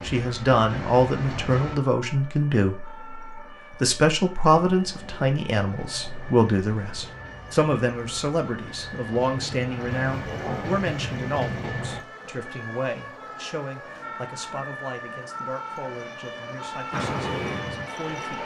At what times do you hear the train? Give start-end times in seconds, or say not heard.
0.0-1.8, 4.6-12.0, 16.9-18.4.